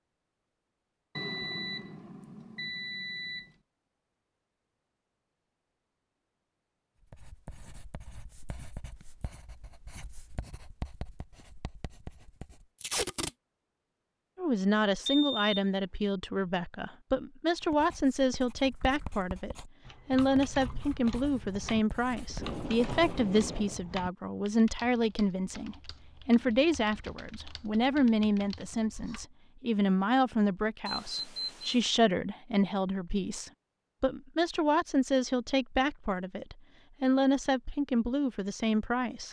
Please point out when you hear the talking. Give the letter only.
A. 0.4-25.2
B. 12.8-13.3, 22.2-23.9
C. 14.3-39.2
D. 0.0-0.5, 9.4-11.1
C.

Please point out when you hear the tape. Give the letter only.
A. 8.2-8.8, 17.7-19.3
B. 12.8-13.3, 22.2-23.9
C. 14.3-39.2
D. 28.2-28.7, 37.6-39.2
B.